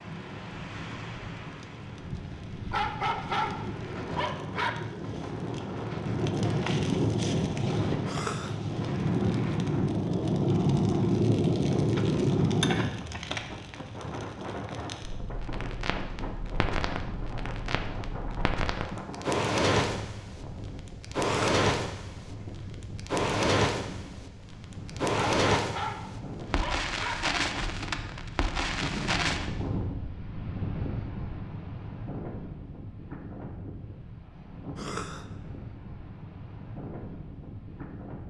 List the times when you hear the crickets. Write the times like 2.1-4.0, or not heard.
not heard.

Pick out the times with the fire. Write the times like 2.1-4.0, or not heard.
0.0-29.5.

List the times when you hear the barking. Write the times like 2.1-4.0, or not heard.
2.7-4.7, 25.1-27.1.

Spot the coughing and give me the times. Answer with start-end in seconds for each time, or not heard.
8.1-8.6, 21.2-21.6, 34.8-35.2.